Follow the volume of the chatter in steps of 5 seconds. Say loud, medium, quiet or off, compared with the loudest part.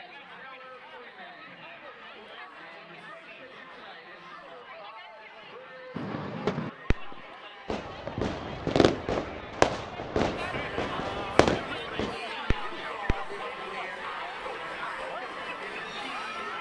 medium, medium, loud, loud.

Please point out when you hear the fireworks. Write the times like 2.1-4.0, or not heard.
6.0-13.4.